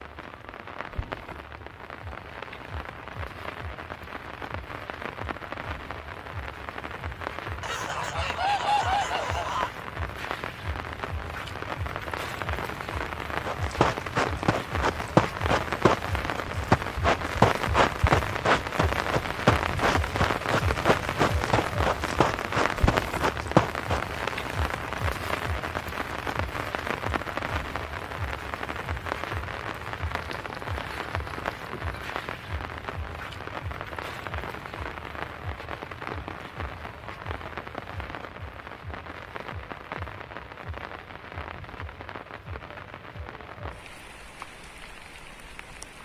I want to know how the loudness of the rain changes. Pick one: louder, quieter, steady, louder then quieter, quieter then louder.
louder then quieter.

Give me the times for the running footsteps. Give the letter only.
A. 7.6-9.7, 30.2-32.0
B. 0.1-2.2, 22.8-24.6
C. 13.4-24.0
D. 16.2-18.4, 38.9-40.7
C.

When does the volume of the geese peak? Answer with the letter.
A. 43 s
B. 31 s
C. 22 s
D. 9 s
D.